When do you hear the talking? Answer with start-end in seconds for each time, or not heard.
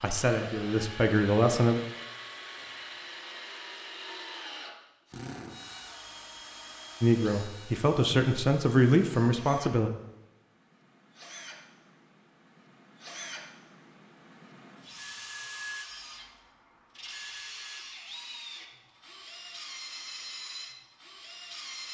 0.0-1.8, 7.0-9.9.